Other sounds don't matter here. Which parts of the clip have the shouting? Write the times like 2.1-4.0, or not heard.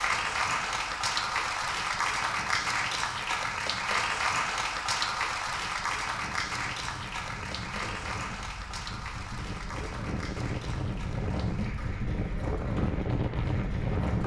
not heard.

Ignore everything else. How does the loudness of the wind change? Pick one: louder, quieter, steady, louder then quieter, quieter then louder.
louder.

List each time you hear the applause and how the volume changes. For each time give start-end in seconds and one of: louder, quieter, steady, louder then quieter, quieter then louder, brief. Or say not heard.
0.0-14.2 quieter.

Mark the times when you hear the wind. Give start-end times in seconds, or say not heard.
0.0-14.2.